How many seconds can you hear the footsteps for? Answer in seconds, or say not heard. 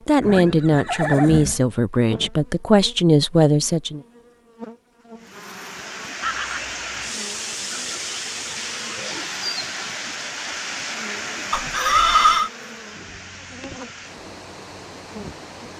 not heard.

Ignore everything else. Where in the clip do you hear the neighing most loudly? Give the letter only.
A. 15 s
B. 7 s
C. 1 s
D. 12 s
D.